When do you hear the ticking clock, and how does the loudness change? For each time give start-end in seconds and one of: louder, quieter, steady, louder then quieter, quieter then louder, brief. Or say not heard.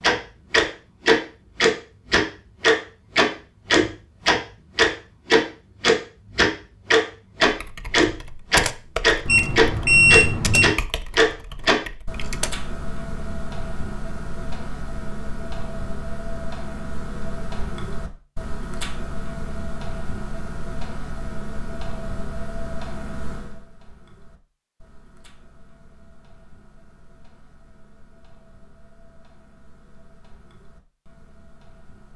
0.0-32.1 quieter.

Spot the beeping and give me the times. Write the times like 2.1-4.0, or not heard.
9.2-10.8.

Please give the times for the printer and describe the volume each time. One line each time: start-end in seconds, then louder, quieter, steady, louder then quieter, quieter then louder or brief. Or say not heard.
not heard.